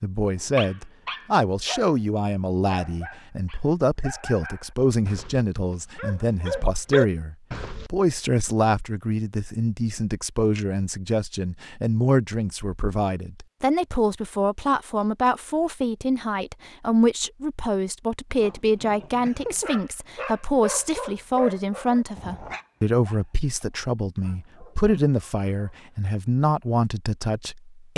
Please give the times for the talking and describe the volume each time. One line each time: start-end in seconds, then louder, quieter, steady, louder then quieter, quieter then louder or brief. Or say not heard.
0.0-27.9 steady.